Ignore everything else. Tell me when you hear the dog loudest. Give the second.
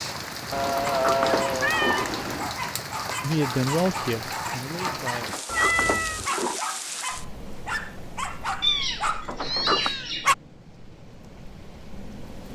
10 s.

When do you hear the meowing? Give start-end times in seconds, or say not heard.
0.5-2.5, 5.5-6.3, 8.6-10.3.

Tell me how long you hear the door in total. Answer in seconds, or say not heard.
4 s.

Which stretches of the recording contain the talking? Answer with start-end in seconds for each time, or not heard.
3.2-5.2.